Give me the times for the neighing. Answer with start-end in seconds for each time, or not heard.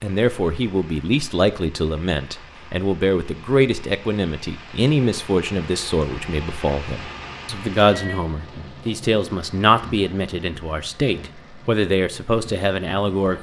not heard.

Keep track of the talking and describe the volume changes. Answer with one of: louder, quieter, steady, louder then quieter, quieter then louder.
steady.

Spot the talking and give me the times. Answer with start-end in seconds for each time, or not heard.
0.0-13.3.